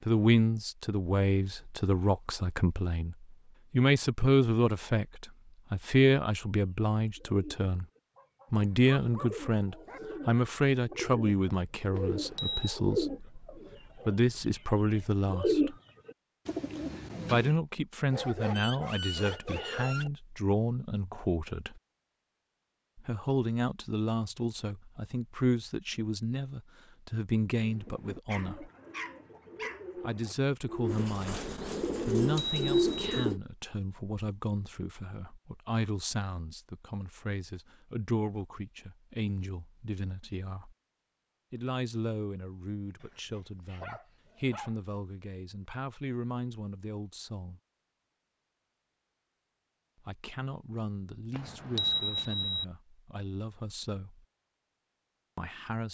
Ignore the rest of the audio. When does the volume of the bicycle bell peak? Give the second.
52 s.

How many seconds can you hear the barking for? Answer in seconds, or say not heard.
7 s.